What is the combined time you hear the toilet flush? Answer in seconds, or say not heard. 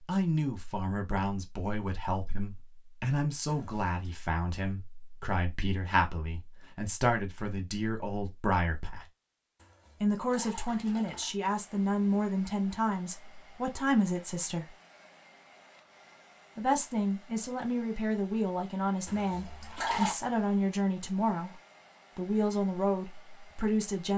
4 s.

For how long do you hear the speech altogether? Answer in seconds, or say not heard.
21 s.